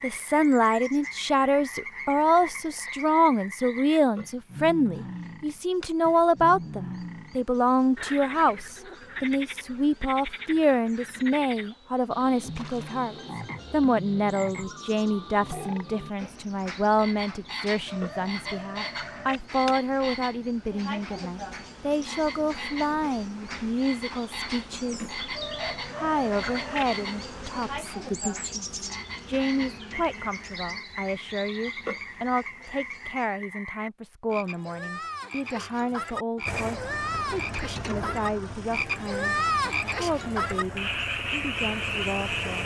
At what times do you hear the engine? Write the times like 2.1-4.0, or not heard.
36.5-42.6.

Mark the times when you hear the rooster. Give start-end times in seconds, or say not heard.
17.9-19.4, 25.3-26.9.